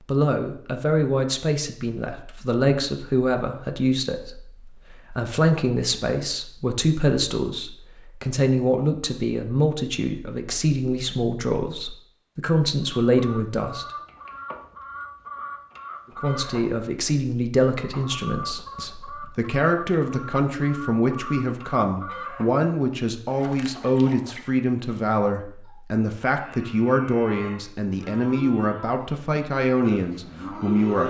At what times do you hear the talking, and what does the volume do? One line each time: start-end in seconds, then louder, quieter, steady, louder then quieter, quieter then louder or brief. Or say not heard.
0.1-13.8 steady
16.2-31.0 steady.